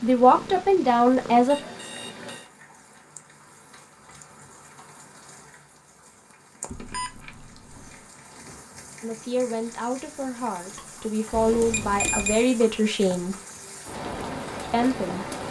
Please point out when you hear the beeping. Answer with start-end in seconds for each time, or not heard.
1.4-2.5, 6.7-8.1, 11.3-12.4.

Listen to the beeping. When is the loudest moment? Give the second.
12 s.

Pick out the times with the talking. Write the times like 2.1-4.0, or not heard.
0.0-1.6, 9.0-13.3, 14.7-15.2.